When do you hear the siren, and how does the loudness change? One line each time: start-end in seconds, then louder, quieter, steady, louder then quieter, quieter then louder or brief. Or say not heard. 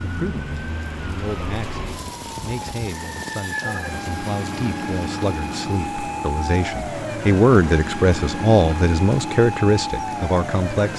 0.0-10.9 louder.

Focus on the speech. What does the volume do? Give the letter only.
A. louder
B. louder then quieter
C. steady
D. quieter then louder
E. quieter
A.